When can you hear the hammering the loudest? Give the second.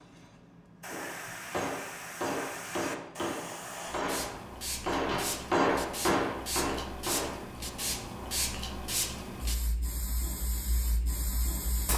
6 s.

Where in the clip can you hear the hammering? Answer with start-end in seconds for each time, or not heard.
0.8-7.5.